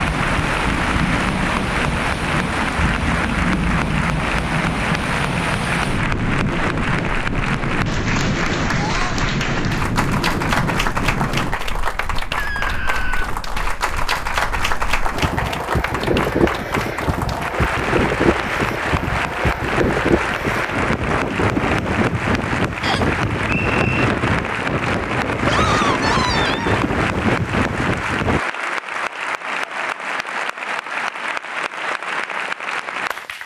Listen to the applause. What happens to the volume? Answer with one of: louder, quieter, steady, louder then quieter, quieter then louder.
steady.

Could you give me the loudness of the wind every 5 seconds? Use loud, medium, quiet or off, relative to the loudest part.
loud, loud, medium, loud, loud, loud, off.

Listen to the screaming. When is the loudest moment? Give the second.
26 s.